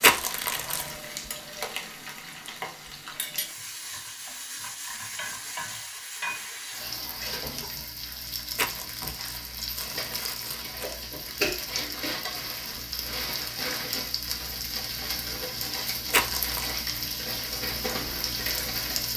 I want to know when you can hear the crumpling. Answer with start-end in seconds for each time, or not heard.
0.0-0.9, 8.6-10.9, 16.1-16.7.